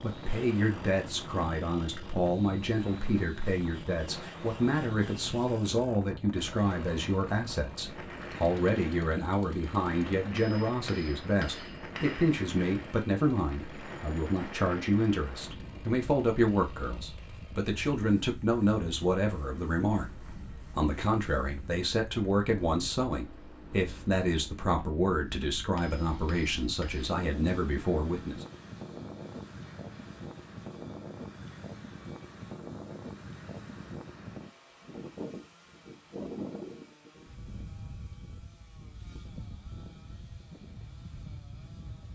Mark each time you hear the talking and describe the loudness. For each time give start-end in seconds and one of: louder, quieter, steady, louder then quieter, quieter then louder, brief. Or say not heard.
0.0-20.1 steady
20.7-28.4 steady.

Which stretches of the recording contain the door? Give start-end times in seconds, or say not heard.
not heard.